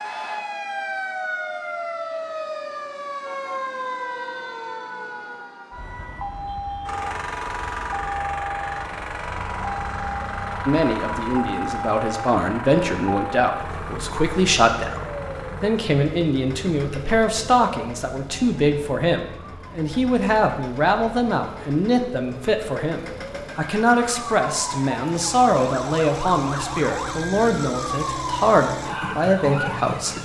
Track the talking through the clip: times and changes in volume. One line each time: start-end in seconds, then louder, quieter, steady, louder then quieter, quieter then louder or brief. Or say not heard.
10.7-30.1 steady.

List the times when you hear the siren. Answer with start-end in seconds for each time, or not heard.
0.0-30.2.